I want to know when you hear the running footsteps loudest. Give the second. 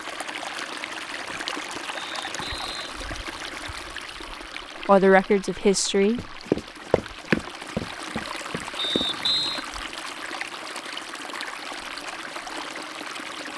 7 s.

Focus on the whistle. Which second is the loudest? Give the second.
9 s.